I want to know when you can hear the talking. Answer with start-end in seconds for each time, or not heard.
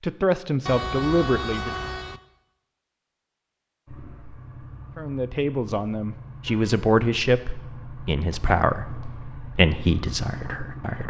0.0-1.7, 5.0-11.0.